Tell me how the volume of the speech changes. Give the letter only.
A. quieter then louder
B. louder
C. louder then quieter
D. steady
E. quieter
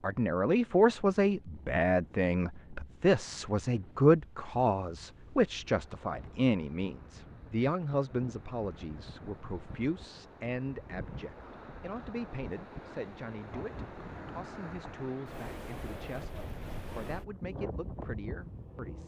E.